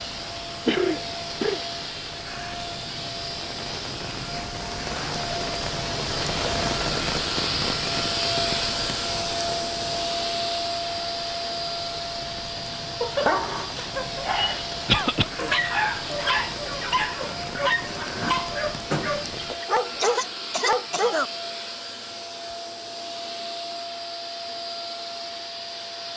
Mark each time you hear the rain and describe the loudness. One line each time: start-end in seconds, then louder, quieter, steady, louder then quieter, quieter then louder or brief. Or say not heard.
0.0-19.6 louder then quieter.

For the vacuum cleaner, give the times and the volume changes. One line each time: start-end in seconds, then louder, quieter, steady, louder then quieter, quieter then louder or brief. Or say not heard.
0.0-26.1 louder then quieter.